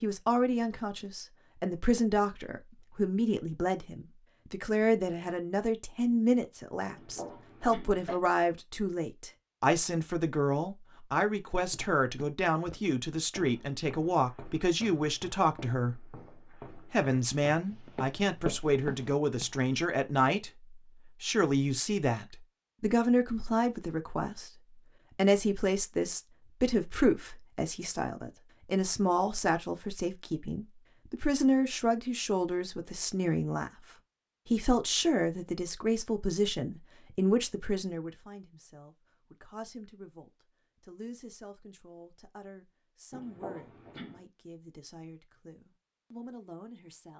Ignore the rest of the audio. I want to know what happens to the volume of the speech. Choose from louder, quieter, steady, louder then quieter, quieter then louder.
quieter.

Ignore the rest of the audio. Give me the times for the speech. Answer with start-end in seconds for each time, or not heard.
0.0-24.5, 25.1-33.7, 34.5-47.1.